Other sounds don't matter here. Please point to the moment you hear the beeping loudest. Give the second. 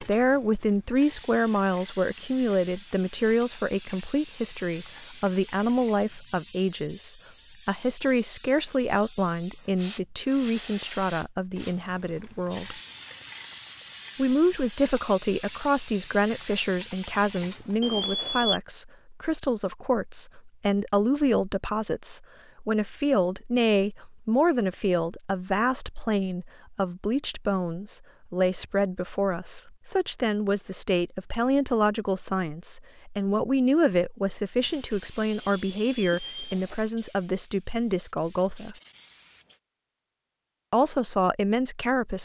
18 s.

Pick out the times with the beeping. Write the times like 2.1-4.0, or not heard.
17.8-18.6, 35.3-36.8.